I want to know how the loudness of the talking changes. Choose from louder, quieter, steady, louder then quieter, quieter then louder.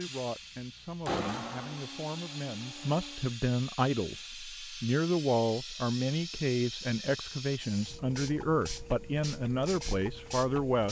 louder.